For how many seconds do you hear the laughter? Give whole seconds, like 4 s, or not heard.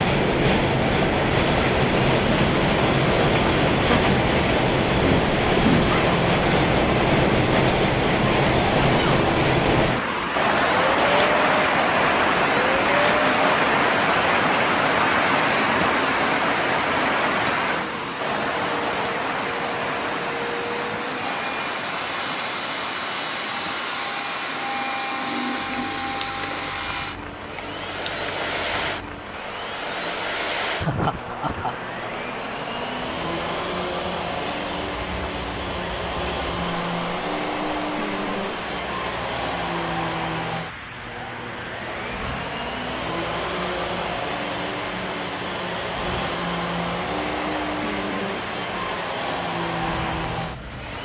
2 s.